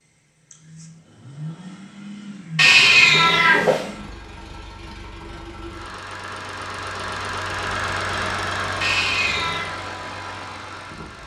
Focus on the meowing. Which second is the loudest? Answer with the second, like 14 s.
3 s.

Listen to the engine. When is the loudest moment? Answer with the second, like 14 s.
8 s.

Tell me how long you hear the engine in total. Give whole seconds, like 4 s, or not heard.
11 s.